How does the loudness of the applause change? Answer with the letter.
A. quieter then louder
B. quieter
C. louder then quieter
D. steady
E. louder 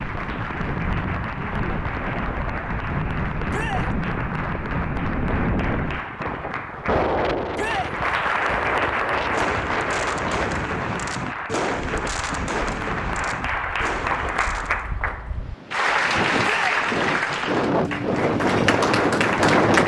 E.